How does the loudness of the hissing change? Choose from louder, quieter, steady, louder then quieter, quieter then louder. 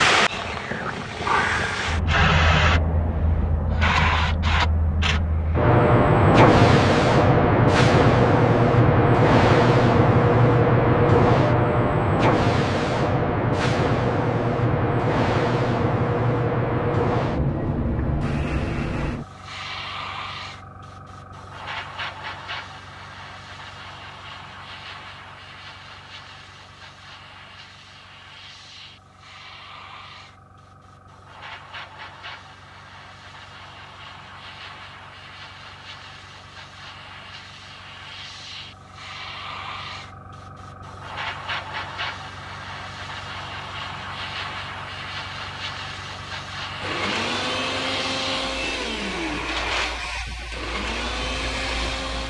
quieter then louder.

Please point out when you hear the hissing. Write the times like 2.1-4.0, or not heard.
0.0-52.2.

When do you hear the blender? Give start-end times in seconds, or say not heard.
46.8-52.2.